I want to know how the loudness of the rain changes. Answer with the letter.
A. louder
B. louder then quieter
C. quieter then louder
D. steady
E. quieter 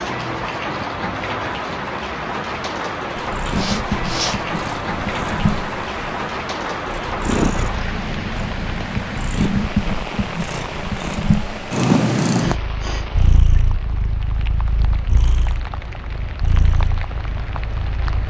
E.